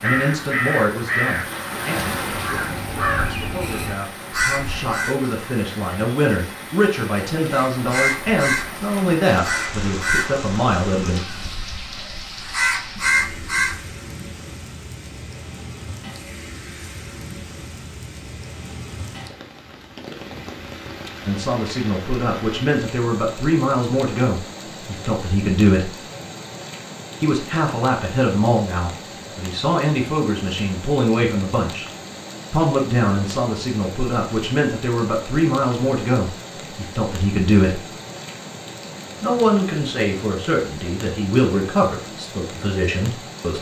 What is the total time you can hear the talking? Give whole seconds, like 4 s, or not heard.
30 s.